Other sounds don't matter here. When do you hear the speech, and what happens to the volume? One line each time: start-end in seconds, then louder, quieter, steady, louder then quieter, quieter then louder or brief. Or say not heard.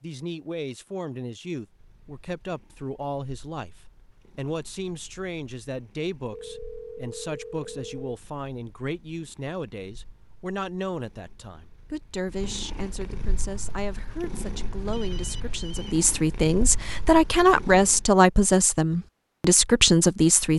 0.0-20.5 louder.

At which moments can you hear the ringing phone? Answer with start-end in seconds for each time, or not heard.
6.3-8.1, 14.9-15.9.